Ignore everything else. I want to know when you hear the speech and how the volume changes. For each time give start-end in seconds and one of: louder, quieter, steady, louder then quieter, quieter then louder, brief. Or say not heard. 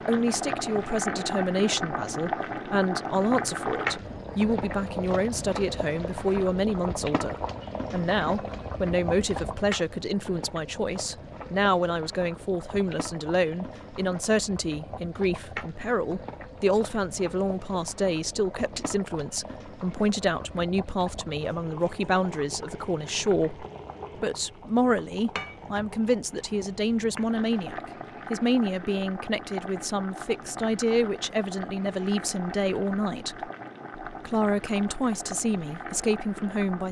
0.1-36.8 steady.